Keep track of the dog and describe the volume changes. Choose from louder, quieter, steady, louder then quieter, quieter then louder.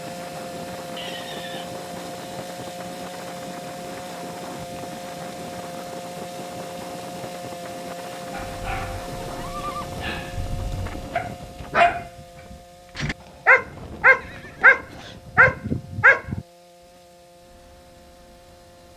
louder.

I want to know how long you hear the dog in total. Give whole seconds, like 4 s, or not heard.
8 s.